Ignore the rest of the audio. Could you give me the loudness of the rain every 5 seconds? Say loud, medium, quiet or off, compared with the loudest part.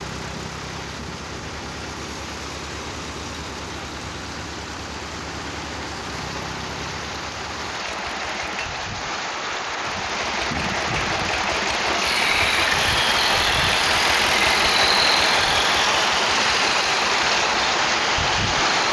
quiet, medium, loud, loud.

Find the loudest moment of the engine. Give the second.
15 s.